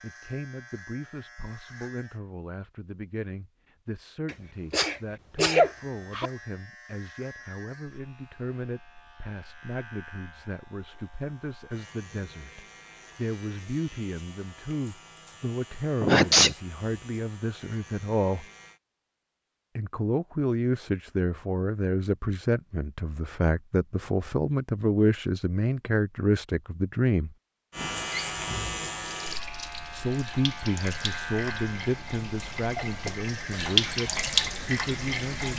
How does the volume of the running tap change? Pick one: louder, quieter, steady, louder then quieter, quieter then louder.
louder.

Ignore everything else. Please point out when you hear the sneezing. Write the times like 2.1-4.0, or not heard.
4.2-6.3, 16.0-16.6, 32.6-33.3.